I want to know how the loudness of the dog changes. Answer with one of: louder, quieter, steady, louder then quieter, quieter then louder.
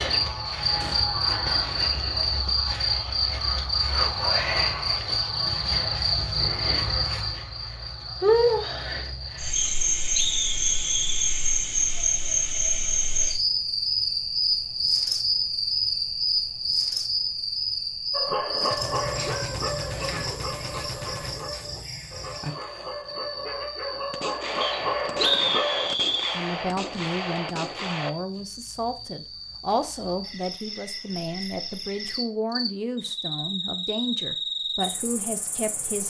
quieter then louder.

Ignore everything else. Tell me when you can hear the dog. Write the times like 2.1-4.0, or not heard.
18.1-25.9.